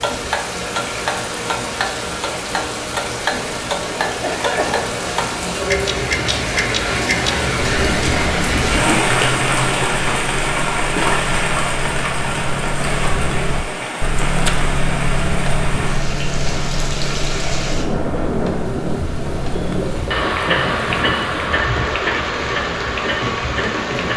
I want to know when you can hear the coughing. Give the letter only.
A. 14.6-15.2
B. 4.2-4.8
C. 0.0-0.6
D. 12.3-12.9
B.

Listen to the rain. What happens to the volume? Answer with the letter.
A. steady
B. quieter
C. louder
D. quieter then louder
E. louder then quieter
E.